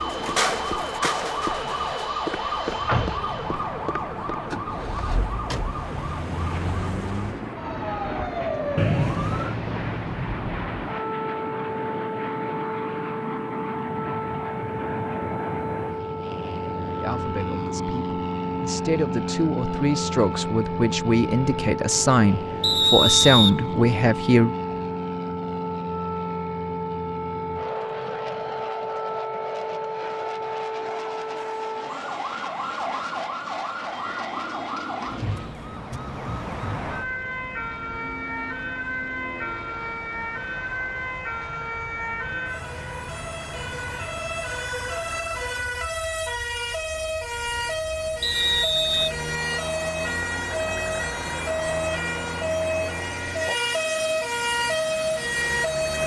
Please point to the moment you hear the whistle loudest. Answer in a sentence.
The volume of the whistle peaks at 23 seconds.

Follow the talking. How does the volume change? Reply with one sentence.
The volume of the talking goes up.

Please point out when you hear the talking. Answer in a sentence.
You can hear the talking from 16.9 to 24.6 s.